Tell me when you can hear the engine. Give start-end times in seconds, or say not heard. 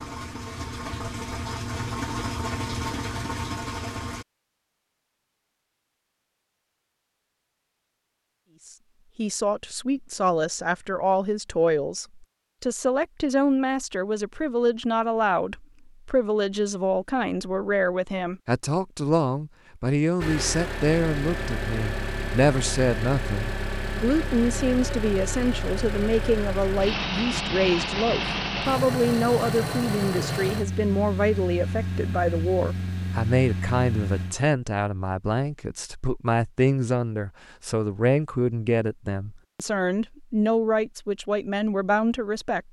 0.0-4.2, 20.2-34.4.